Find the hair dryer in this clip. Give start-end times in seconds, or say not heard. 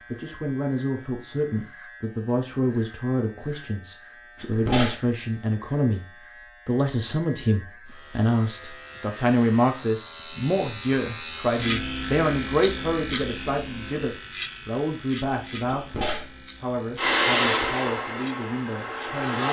16.9-19.4.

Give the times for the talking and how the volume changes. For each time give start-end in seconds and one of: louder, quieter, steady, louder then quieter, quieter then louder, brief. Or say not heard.
0.0-16.0 steady
16.6-19.4 brief.